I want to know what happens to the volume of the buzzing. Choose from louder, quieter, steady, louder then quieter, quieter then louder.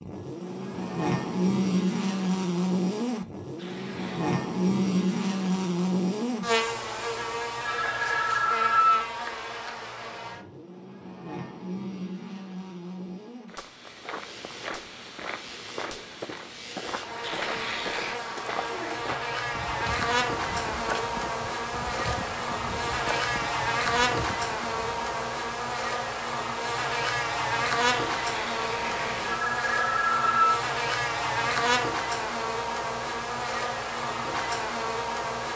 quieter then louder.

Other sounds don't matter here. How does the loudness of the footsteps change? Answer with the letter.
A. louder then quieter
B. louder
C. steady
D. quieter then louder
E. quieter
C.